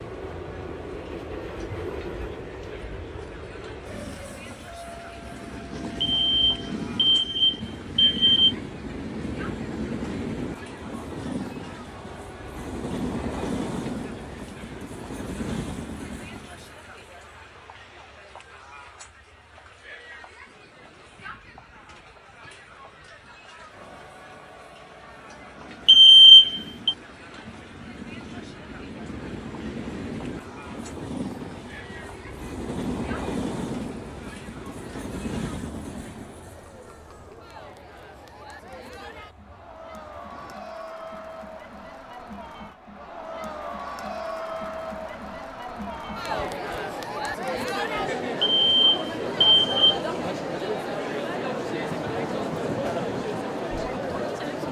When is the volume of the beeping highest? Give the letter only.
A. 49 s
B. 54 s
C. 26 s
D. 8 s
C.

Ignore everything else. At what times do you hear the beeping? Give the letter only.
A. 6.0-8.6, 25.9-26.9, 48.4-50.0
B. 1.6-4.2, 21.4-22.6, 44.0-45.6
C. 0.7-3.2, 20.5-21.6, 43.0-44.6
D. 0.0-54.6
A.